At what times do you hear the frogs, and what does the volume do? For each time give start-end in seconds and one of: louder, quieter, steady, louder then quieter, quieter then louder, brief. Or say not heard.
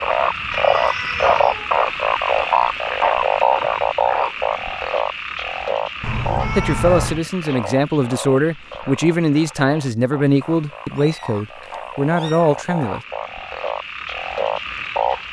0.0-15.2 quieter then louder.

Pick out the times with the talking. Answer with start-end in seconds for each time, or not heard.
6.5-13.1.